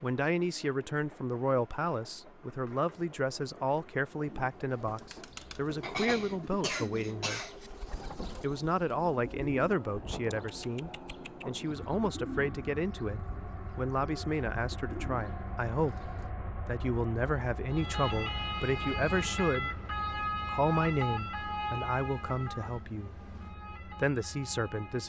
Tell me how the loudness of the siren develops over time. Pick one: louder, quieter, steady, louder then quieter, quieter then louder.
quieter.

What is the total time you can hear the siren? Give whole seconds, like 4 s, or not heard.
7 s.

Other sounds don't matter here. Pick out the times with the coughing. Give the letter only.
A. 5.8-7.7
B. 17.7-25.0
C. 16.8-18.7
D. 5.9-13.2
A.